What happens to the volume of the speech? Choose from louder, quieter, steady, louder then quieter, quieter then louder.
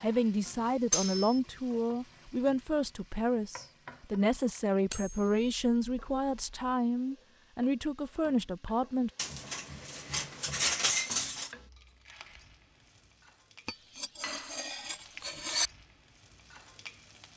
steady.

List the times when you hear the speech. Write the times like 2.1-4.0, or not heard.
0.0-9.1.